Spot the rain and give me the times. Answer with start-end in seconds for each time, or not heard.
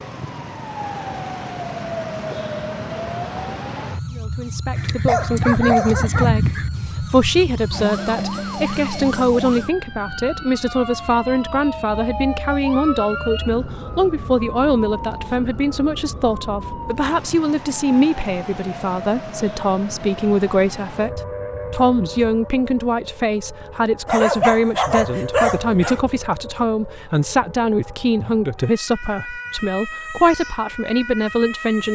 not heard.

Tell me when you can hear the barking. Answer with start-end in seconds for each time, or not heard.
4.8-6.7, 24.1-26.0.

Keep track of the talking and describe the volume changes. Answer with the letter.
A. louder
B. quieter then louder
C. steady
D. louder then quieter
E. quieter
C.